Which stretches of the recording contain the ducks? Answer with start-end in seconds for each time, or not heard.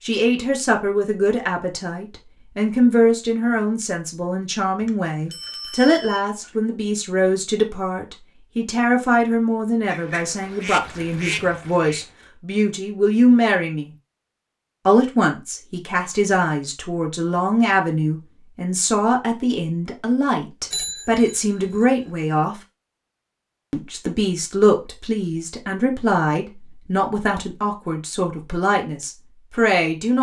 9.8-12.2.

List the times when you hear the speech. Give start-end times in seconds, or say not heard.
0.0-13.9, 14.8-22.6, 23.7-30.1.